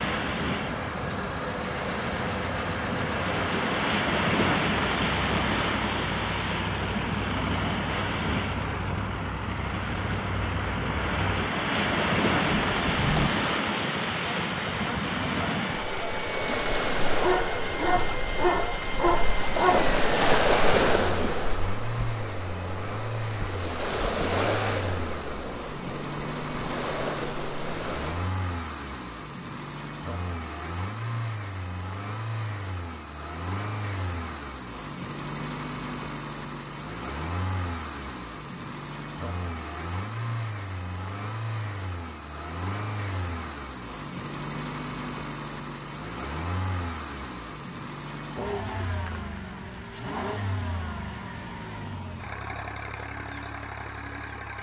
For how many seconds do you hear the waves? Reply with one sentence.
You can hear the waves for 28 seconds altogether.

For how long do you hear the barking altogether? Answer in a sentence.
You can hear the barking for 3 seconds altogether.